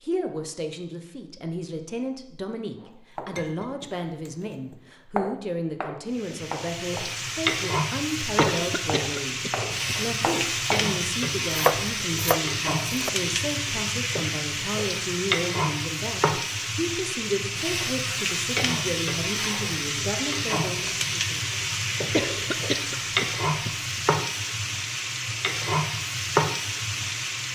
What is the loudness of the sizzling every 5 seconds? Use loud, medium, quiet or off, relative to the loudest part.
off, loud, loud, loud, loud, loud.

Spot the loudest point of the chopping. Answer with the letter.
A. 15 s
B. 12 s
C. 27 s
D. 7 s
B.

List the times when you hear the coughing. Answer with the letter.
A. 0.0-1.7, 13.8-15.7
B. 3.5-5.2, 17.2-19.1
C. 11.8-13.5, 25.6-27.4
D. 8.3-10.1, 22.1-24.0
D.